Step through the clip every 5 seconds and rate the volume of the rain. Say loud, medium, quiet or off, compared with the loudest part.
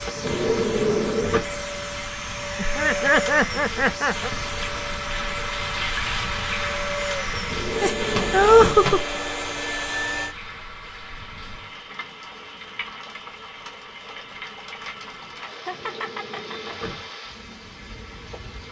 medium, loud, medium, medium.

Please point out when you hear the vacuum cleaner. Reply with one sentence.
You can hear the vacuum cleaner from 0.0 to 10.3 s.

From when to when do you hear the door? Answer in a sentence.
The door can be heard from 0.1 to 1.4 s, from 7.3 to 8.8 s and from 15.6 to 17.1 s.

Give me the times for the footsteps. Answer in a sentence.
You can't hear the footsteps here.